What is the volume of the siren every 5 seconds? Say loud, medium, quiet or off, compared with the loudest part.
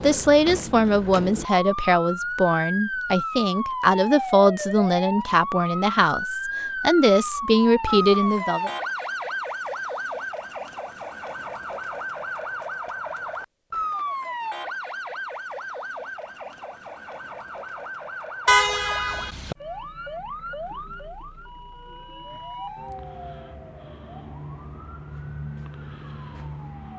loud, loud, loud, medium, medium, medium.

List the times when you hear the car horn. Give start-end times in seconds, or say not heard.
18.4-19.6.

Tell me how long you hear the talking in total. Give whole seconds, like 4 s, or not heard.
9 s.